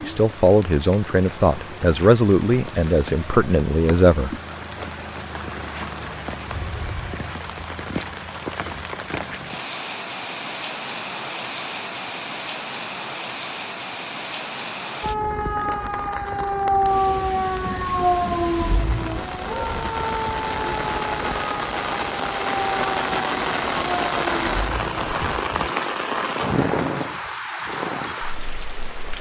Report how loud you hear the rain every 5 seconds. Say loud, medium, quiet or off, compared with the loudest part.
medium, medium, medium, medium, loud, loud.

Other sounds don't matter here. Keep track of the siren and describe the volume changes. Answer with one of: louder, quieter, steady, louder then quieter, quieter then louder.
quieter.